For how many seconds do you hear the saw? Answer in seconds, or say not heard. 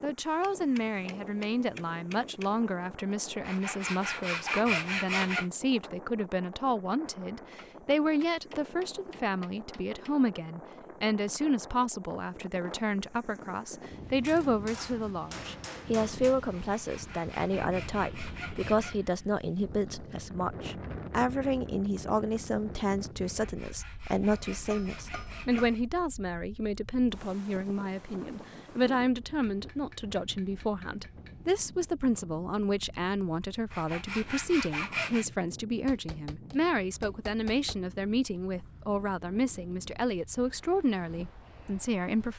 9 s.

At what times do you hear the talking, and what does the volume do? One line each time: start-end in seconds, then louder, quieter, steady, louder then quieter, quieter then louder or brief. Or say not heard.
0.0-42.3 steady.